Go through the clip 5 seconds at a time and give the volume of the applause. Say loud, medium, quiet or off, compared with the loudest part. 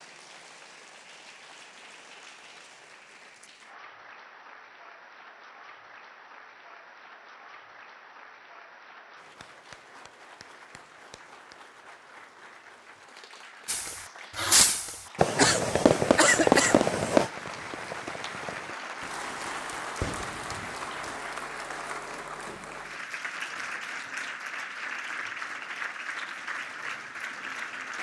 quiet, quiet, quiet, loud, loud, loud.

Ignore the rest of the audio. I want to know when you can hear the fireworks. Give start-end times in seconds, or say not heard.
13.7-21.1.